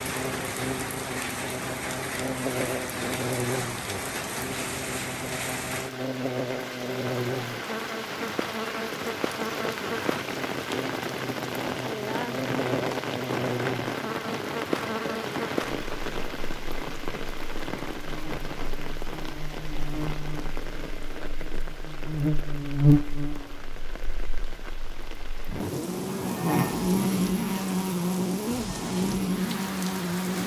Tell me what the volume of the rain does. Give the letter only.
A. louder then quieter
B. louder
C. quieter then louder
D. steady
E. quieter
E.